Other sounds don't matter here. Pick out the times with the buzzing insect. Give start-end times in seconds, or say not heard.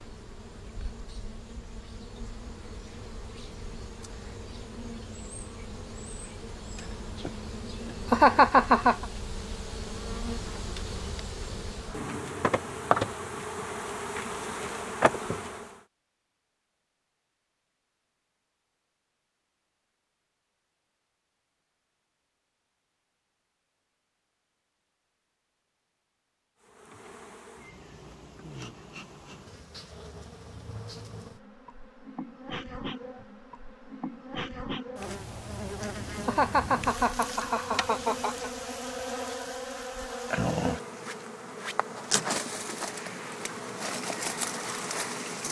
0.0-15.8, 26.6-45.4.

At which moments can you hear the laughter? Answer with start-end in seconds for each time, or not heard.
8.1-9.1, 36.2-38.5.